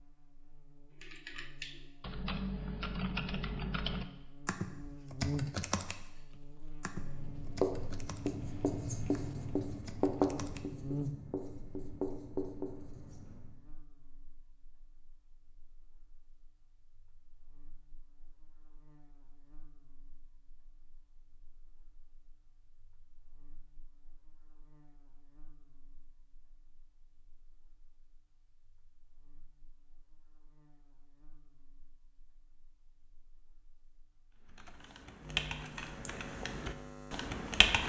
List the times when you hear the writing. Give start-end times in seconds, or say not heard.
7.0-13.6.